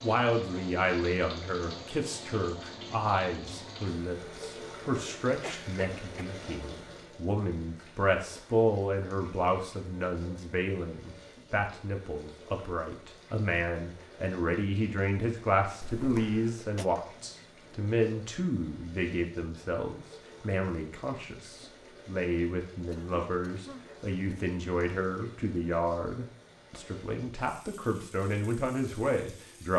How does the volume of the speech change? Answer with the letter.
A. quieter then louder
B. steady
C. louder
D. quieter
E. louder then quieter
B.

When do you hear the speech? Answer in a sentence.
The speech can be heard from 0.0 to 29.7 s.